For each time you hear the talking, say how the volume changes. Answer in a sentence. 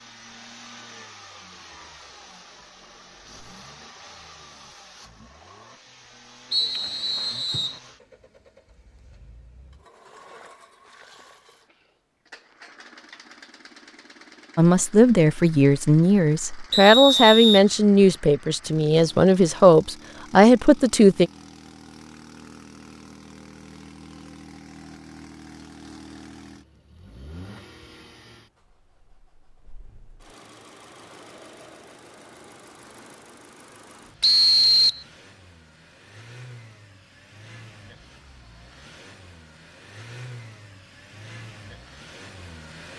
The talking can be heard from 14.6 to 21.3 s, at a steady volume.